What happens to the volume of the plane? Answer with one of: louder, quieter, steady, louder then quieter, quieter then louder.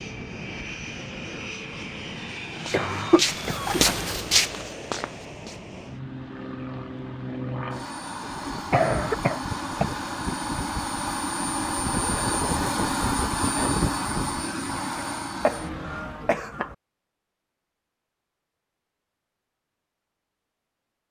louder.